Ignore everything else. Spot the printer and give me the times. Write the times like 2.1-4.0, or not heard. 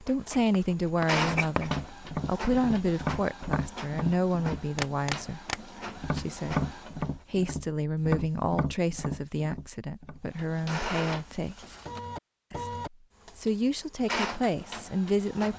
0.2-7.1, 10.2-15.5.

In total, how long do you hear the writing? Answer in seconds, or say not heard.
2 s.